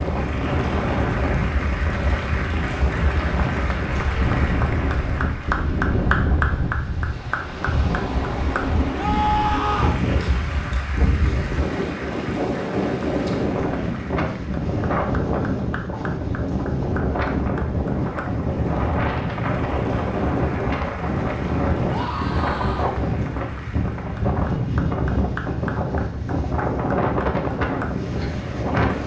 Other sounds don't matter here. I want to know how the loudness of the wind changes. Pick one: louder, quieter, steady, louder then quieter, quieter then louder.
steady.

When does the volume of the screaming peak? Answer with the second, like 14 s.
9 s.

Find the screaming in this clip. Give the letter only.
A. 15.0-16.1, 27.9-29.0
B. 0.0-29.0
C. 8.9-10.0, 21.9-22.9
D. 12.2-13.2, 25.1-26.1
C.